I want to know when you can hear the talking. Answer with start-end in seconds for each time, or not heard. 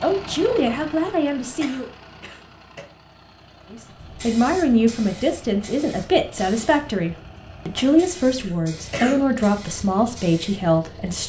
0.0-1.9, 3.7-11.2.